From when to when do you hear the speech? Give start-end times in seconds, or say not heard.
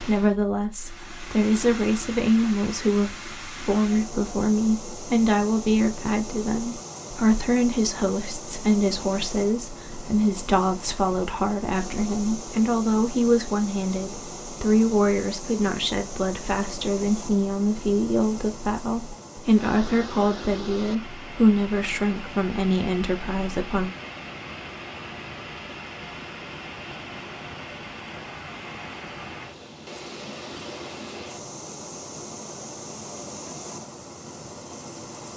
0.0-23.9.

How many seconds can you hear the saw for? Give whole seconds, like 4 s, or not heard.
not heard.